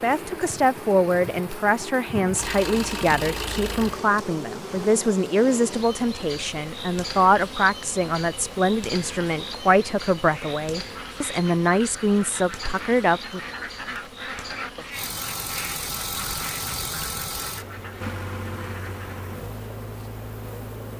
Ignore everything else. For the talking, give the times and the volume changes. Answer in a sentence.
The talking can be heard from 0.0 to 13.4 s, at a steady volume.